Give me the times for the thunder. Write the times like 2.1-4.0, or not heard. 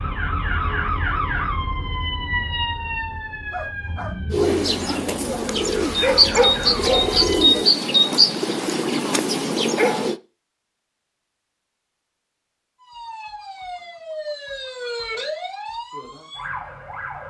not heard.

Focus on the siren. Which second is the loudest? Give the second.
1 s.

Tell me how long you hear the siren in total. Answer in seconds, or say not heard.
12 s.